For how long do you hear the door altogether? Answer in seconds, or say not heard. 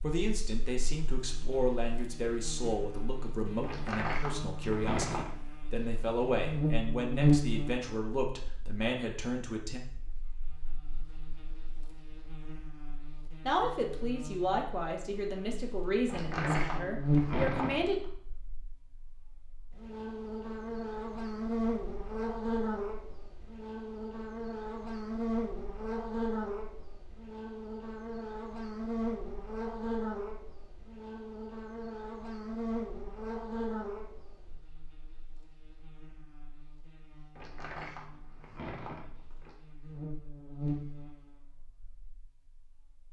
6 s.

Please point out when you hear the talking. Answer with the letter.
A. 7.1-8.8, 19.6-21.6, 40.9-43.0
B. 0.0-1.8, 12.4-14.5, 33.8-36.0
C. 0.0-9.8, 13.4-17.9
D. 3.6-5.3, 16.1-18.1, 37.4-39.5
C.